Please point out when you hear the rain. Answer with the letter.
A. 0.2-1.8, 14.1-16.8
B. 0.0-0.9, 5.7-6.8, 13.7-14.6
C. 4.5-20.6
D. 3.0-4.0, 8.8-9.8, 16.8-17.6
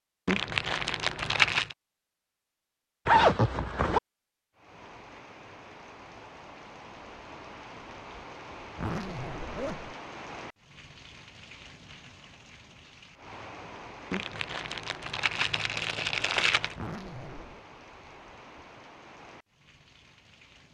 C.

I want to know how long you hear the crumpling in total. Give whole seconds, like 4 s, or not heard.
4 s.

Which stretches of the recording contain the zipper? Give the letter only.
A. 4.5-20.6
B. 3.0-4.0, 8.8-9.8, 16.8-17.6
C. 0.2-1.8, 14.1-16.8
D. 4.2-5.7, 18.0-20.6
B.